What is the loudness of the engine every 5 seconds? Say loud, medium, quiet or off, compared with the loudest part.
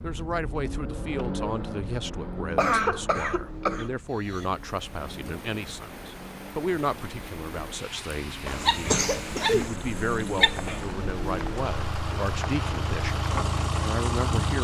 medium, medium, loud.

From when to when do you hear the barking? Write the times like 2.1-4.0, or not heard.
8.6-10.8.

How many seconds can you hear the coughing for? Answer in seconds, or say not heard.
3 s.